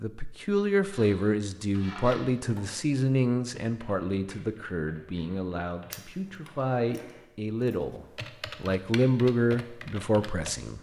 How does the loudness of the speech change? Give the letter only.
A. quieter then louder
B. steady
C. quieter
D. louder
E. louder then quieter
A.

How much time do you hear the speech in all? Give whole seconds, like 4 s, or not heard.
11 s.